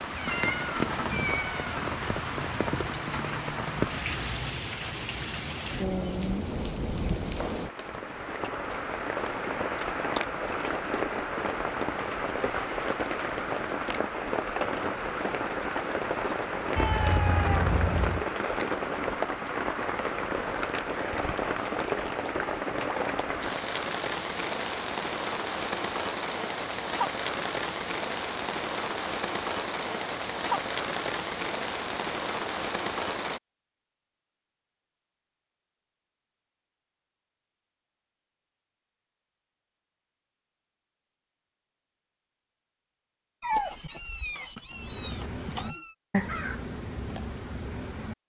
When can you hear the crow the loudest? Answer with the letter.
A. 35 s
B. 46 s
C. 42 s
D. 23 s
B.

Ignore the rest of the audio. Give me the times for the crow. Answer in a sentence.
The crow can be heard from 44.7 to 48.1 s.